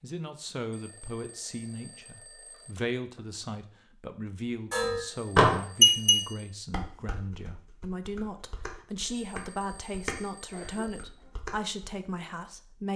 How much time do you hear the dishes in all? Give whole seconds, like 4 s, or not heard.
7 s.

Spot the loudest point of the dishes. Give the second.
6 s.